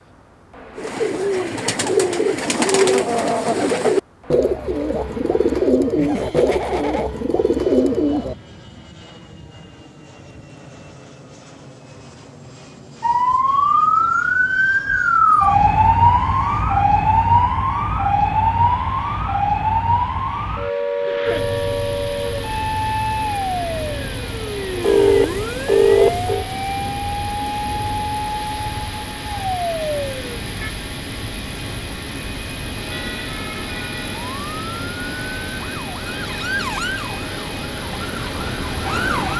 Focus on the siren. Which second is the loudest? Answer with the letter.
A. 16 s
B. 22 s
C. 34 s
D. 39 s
A.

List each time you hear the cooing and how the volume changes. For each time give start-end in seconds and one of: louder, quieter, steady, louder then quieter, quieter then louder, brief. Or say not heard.
0.8-8.3 steady.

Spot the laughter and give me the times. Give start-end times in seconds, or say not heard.
6.0-7.1.